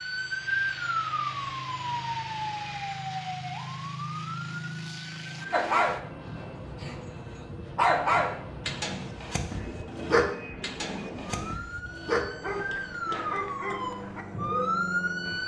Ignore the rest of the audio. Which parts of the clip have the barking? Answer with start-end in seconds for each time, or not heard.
5.5-6.0, 6.8-14.8.